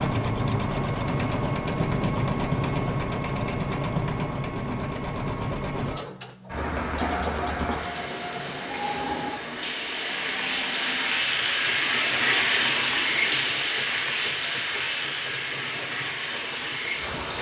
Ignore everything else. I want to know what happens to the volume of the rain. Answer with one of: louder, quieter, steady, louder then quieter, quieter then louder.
louder then quieter.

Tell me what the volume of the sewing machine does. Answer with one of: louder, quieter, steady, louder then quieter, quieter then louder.
quieter.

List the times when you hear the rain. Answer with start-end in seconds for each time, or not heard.
6.5-17.3.